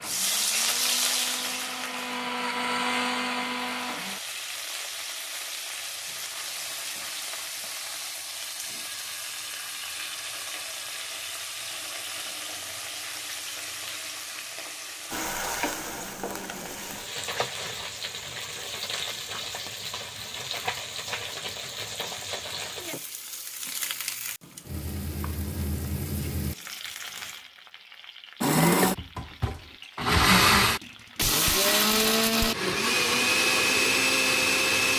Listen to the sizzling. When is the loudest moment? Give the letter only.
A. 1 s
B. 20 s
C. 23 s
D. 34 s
A.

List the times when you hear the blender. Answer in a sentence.
The blender can be heard from 0.0 to 4.2 s and from 28.4 to 34.9 s.